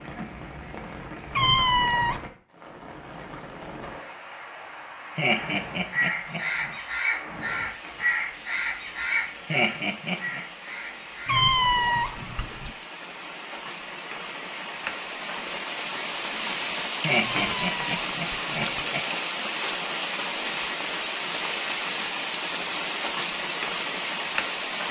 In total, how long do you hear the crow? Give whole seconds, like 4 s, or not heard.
6 s.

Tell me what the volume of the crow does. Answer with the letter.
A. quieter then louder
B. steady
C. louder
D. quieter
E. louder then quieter
D.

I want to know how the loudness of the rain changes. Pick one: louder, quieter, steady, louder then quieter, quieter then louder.
louder.